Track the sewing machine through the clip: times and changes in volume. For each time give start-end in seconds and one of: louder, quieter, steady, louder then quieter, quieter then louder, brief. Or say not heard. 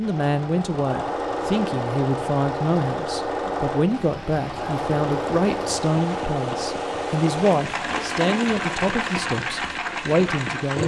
0.0-10.8 steady.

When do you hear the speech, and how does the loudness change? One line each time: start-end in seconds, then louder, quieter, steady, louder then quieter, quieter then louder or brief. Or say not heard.
0.0-10.8 steady.